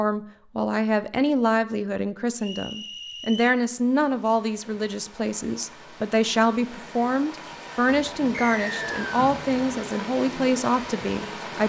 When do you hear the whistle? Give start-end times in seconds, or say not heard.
2.4-3.6, 8.3-9.1.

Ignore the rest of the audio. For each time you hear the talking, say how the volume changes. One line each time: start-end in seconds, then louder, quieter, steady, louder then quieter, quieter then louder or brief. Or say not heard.
0.0-11.6 steady.